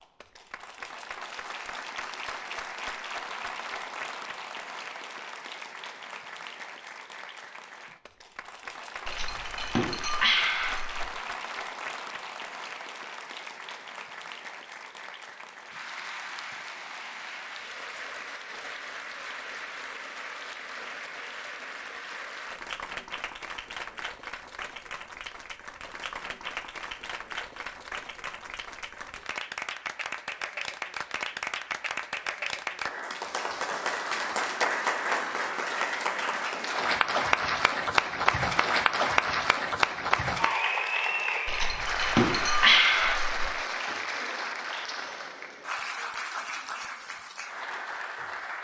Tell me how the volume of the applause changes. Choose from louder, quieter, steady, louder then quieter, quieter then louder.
louder.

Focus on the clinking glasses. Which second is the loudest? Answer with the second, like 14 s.
43 s.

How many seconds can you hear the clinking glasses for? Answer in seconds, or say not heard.
4 s.